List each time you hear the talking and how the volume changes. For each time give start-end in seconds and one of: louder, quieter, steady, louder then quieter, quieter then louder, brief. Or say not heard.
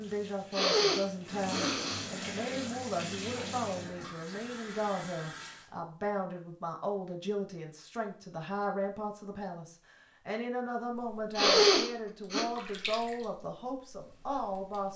0.0-14.9 steady.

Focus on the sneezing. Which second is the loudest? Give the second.
12 s.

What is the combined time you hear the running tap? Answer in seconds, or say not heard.
10 s.